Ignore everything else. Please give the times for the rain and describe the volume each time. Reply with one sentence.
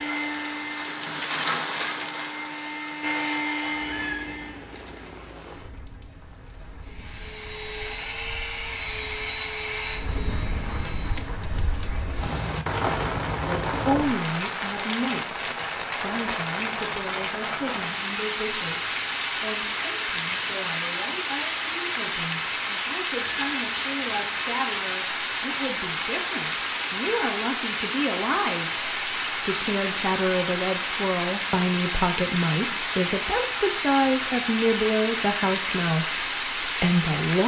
You can hear the rain from 0.0 to 37.4 s, getting louder.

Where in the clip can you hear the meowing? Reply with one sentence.
You can hear the meowing from 3.9 to 5.1 s and from 23.1 to 24.3 s.